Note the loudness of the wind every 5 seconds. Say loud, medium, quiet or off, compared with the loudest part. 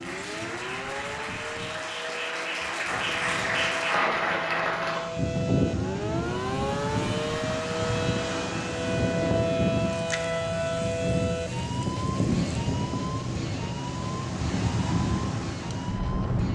quiet, loud, loud, loud.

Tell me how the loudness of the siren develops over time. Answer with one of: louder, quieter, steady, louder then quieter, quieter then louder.
louder then quieter.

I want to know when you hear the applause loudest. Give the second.
4 s.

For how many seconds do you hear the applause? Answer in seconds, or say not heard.
5 s.